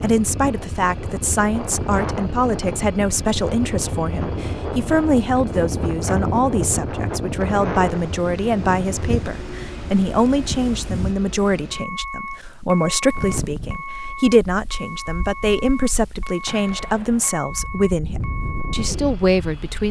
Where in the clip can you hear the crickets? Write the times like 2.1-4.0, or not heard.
not heard.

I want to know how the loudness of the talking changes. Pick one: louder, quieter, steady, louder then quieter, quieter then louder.
steady.